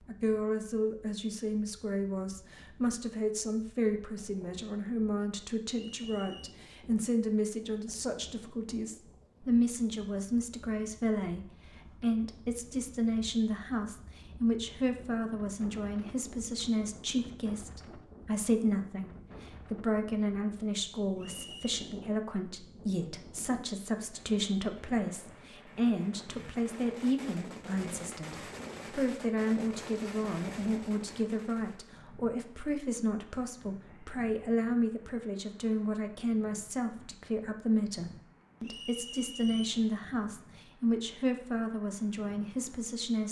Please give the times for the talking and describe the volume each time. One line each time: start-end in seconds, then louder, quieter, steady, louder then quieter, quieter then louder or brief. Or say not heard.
0.1-43.2 steady.